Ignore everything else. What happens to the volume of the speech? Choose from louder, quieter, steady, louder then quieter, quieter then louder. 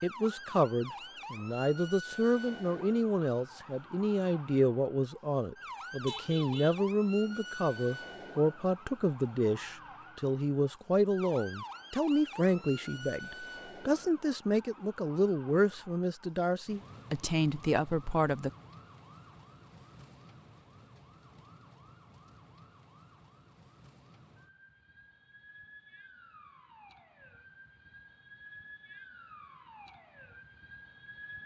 steady.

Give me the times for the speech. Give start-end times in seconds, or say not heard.
0.0-18.5.